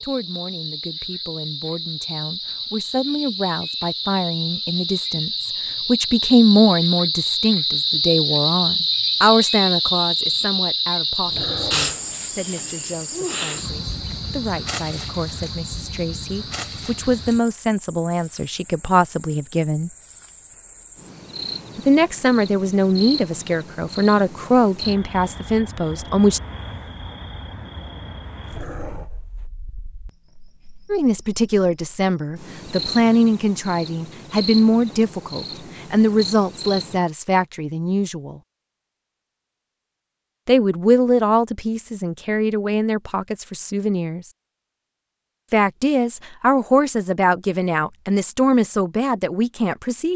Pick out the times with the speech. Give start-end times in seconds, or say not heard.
0.0-19.9, 21.8-26.4, 30.9-38.4, 40.5-44.2, 45.5-50.1.